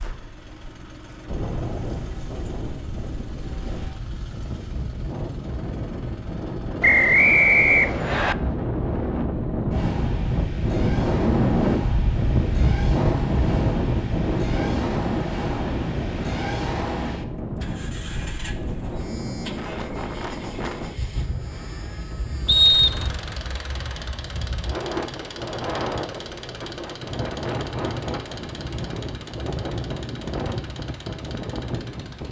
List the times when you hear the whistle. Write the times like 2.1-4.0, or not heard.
6.8-8.3, 22.4-23.1.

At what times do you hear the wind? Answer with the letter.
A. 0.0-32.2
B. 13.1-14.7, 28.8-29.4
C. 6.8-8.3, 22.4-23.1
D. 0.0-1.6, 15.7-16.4
A.